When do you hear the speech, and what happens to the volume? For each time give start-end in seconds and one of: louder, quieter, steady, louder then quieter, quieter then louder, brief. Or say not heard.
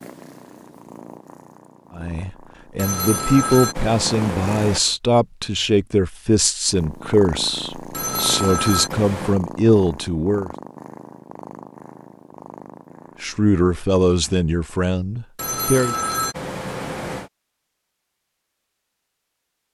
1.9-10.5 steady
13.2-15.9 brief.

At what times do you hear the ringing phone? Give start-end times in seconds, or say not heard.
2.8-4.8, 7.9-9.4, 15.3-17.3.